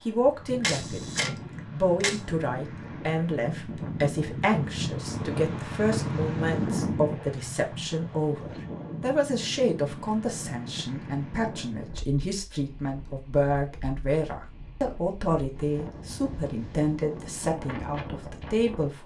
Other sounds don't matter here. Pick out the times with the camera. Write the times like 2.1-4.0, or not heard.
0.6-2.2.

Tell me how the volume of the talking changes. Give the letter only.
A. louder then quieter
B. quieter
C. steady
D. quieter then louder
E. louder
C.